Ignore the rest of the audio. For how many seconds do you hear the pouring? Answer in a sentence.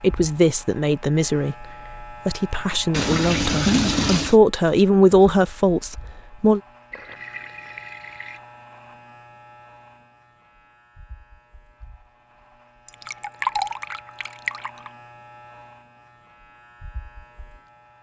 The pouring can be heard for 5 seconds in total.